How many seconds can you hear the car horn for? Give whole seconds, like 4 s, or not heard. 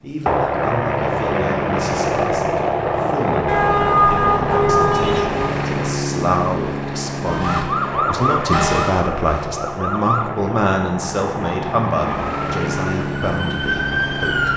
2 s.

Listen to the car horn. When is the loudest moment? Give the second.
4 s.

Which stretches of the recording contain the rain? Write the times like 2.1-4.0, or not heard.
not heard.